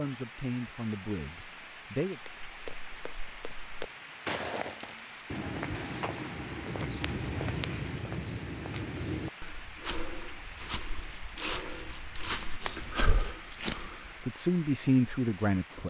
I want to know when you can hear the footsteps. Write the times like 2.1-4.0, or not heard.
2.5-14.2.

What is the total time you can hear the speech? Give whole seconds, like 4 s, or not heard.
4 s.